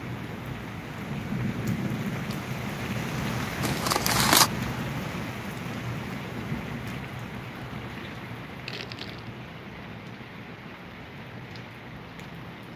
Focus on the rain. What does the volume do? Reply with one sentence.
The volume of the rain goes down.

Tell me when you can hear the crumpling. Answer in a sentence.
You can hear the crumpling from 3.6 to 4.5 s and from 8.7 to 9.3 s.